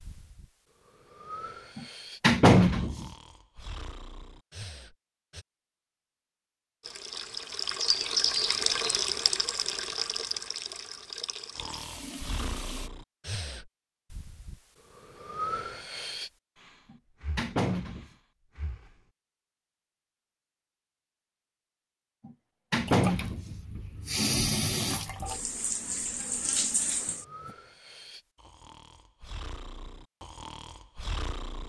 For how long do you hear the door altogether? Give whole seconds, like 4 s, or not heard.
4 s.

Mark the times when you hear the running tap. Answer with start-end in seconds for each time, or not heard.
6.8-12.9, 22.9-27.6.